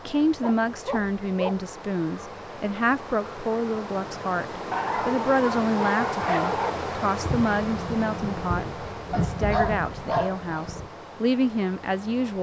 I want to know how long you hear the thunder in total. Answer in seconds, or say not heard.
4 s.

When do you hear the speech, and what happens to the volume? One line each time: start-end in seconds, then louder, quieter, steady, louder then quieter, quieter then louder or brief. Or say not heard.
0.1-12.3 steady.